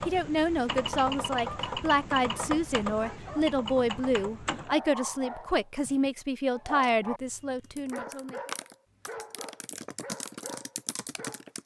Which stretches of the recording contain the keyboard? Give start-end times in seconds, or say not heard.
0.0-4.8, 7.6-11.6.